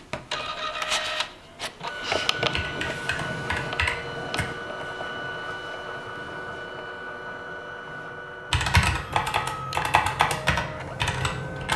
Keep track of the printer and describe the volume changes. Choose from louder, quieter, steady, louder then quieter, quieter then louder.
quieter.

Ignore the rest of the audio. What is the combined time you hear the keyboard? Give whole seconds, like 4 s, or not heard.
5 s.